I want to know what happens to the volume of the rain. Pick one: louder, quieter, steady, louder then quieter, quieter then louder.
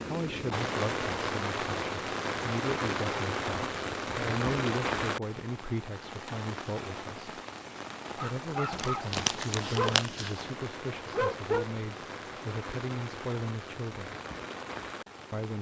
quieter.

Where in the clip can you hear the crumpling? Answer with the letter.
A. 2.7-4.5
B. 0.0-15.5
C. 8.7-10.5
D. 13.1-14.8
C.